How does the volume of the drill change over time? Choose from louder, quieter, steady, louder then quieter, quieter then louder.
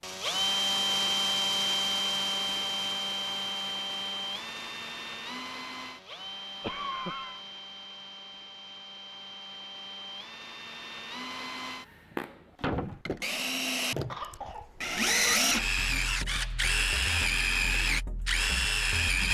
quieter then louder.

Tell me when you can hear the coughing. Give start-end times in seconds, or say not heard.
6.6-7.4, 14.1-14.7.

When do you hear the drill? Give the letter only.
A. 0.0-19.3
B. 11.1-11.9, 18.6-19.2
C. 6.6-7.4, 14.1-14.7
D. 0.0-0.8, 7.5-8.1
A.